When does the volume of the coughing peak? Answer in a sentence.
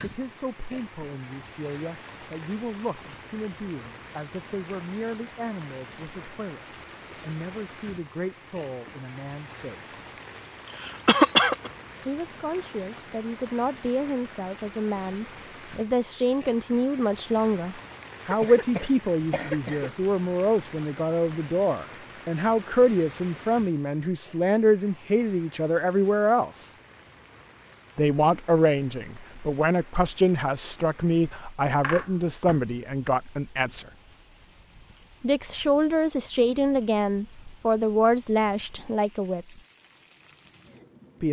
The loudest moment of the coughing is at 11 seconds.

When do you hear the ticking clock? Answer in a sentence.
The ticking clock can't be heard in this clip.